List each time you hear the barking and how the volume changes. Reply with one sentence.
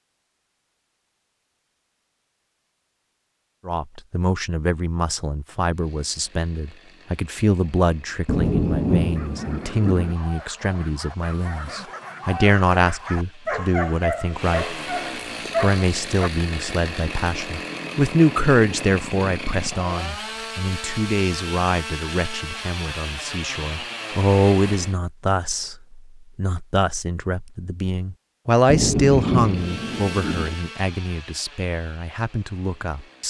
You can hear the barking from 9.2 to 16.3 s, getting louder.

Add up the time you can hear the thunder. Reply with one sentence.
You can hear the thunder for 4 seconds altogether.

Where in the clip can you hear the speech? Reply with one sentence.
You can hear the speech from 3.6 to 14.8 s and from 15.6 to 33.2 s.